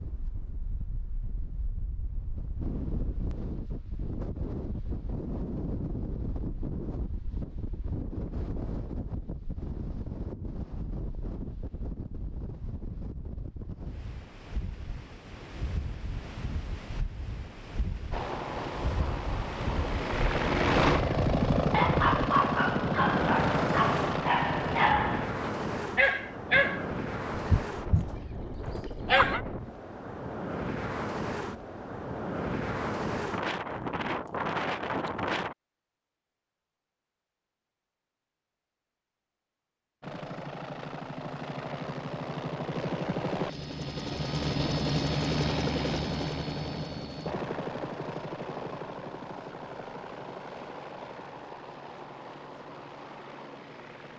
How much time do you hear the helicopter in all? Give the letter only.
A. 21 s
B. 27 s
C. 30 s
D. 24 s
A.